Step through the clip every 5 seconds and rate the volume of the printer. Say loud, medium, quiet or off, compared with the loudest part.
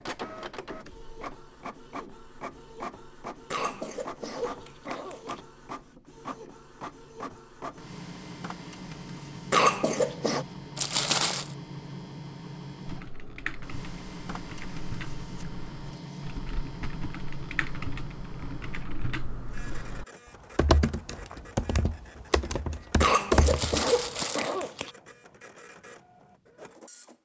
loud, loud, loud, loud, medium, medium.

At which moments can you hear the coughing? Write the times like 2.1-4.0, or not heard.
3.5-5.4, 9.5-10.4, 23.0-24.9.